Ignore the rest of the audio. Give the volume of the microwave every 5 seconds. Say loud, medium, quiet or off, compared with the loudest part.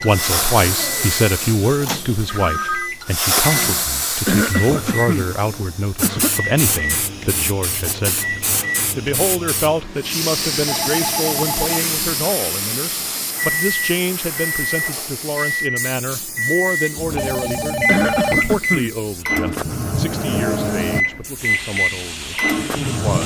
medium, medium, medium, loud, loud.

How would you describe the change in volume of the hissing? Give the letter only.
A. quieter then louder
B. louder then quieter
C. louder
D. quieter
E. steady
D.